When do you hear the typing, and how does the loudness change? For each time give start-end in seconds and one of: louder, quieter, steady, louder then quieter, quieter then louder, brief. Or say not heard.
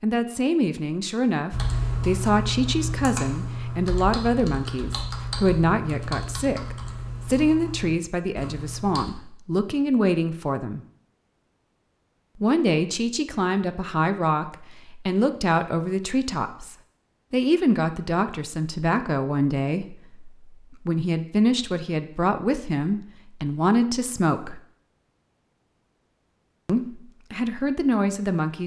1.5-9.1 quieter.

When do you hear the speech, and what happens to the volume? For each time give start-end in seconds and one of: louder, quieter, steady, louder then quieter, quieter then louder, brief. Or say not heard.
0.0-10.8 steady
12.4-24.6 steady
26.6-28.6 brief.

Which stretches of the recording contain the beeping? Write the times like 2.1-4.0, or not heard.
not heard.